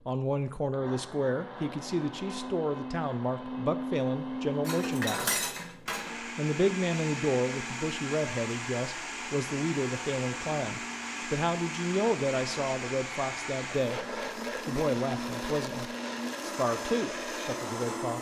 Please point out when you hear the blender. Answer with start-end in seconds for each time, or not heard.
0.0-18.1.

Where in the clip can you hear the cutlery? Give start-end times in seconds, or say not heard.
4.7-6.1.